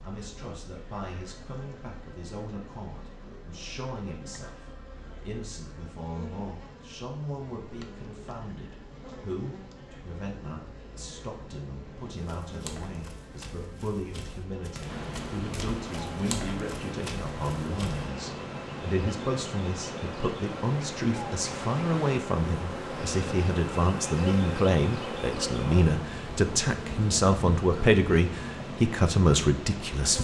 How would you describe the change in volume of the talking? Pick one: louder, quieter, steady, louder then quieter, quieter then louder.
louder.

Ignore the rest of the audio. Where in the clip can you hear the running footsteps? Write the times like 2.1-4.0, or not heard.
12.1-18.1.